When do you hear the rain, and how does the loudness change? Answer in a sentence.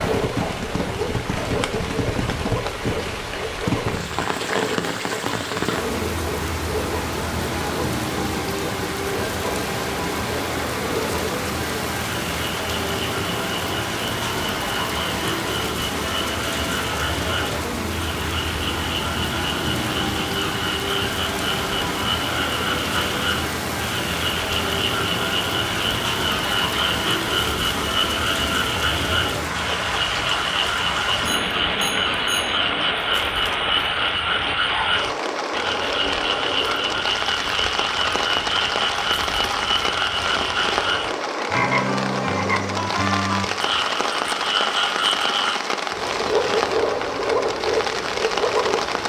The rain can be heard from 0.0 to 49.0 s, at a steady volume.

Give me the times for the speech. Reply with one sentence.
You can't hear the speech here.